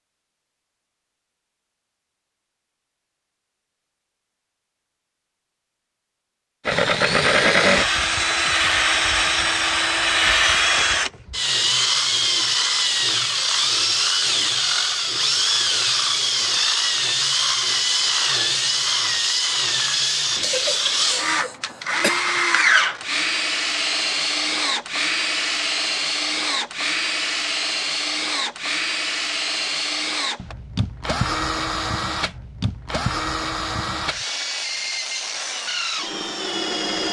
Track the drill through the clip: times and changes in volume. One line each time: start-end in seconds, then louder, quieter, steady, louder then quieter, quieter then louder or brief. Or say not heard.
6.7-37.0 quieter.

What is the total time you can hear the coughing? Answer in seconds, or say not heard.
2 s.